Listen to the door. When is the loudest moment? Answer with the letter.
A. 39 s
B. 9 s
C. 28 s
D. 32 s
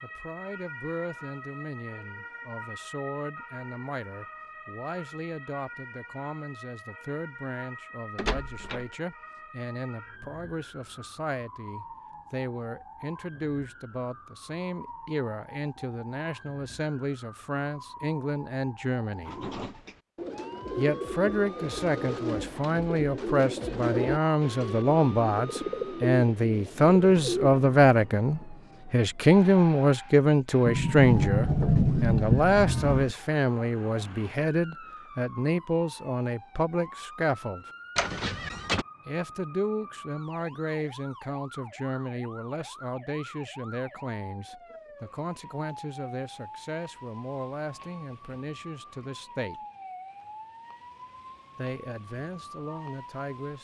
D.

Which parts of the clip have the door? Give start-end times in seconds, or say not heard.
8.2-8.8, 30.6-33.1, 38.0-38.9.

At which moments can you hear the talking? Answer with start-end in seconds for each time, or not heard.
0.0-19.4, 20.8-37.6, 39.0-49.6, 51.5-53.5.